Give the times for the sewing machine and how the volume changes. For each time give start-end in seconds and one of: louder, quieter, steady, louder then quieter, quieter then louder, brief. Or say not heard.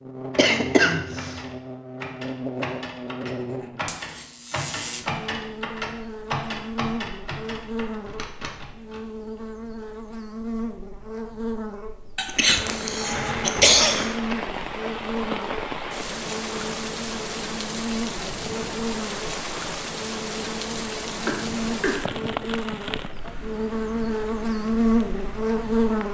not heard.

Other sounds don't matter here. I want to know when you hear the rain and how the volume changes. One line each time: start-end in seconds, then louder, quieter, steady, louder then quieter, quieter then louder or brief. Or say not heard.
12.3-26.0 quieter.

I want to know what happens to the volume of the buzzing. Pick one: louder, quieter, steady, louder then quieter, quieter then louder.
louder.